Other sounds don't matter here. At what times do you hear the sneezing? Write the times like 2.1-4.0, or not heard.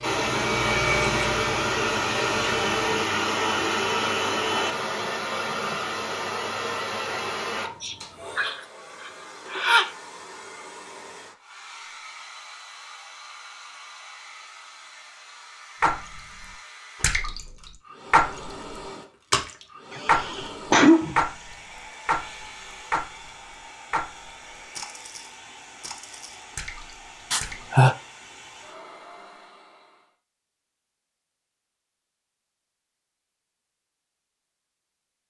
7.6-9.9, 19.9-21.2, 27.3-27.9.